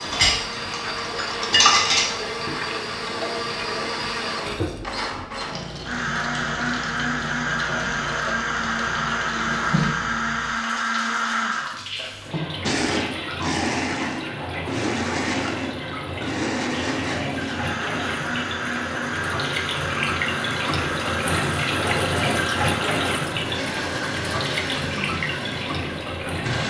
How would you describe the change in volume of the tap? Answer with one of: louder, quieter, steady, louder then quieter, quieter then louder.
louder.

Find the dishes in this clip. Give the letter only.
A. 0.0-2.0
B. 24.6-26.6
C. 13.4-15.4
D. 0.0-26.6
A.